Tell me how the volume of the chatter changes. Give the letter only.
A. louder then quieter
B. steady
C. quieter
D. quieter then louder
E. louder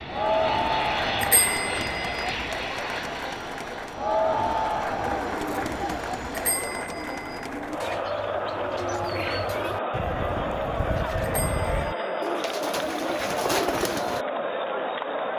B.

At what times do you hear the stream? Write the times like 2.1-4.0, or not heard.
not heard.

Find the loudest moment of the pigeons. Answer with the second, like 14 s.
14 s.